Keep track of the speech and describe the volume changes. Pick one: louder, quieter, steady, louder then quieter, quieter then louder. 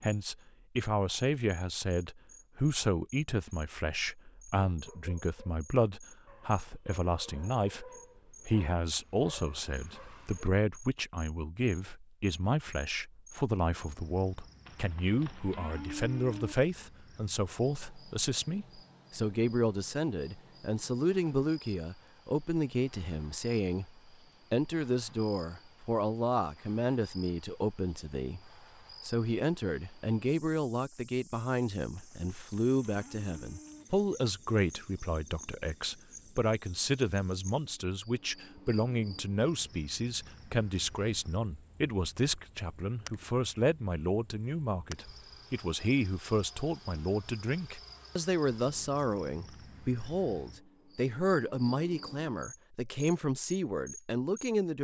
steady.